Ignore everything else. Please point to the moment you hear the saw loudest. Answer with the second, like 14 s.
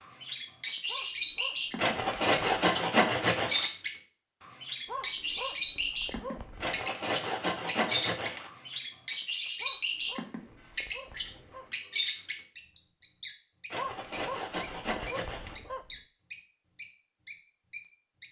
3 s.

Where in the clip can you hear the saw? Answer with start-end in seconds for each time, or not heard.
1.8-3.7, 6.6-8.5, 13.7-15.6.